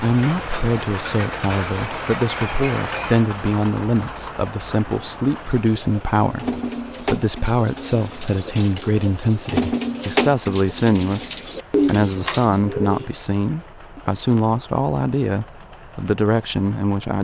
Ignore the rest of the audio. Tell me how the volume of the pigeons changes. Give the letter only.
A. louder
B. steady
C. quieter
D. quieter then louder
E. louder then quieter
D.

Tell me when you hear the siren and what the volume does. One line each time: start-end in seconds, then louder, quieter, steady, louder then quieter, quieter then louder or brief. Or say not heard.
not heard.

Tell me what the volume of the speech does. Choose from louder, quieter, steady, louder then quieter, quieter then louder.
steady.